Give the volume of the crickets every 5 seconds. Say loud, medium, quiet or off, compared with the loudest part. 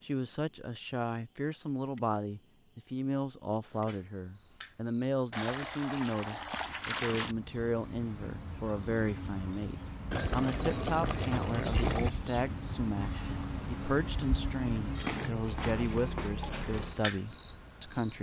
quiet, quiet, medium, loud.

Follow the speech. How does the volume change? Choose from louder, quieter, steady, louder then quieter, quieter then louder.
steady.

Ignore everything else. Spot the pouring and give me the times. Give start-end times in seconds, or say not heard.
5.3-7.3, 10.1-12.1.